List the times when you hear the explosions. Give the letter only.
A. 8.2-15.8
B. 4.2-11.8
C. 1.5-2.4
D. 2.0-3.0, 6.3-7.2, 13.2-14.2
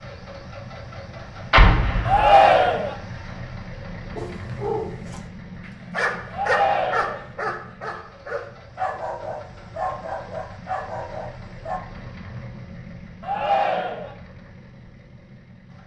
C.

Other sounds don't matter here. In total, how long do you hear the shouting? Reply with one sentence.
You can hear the shouting for 3 seconds altogether.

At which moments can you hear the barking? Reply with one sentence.
The barking can be heard from 4.2 to 11.8 s.